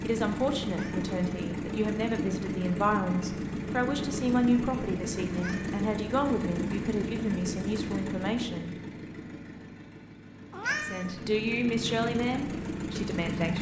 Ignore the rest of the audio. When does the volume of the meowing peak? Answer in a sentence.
The loudest moment of the meowing is at 11 seconds.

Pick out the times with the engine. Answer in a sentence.
You can hear the engine from 0.0 to 13.5 s.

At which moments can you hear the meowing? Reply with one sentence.
You can hear the meowing from 0.7 to 1.1 s, from 5.3 to 5.8 s and from 10.5 to 11.2 s.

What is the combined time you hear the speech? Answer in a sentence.
You can hear the speech for 12 seconds altogether.